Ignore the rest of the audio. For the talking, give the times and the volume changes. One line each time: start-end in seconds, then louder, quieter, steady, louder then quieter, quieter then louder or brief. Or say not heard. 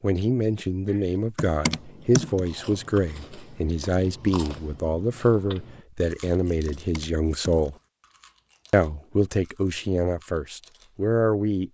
0.0-7.8 steady
8.7-11.6 brief.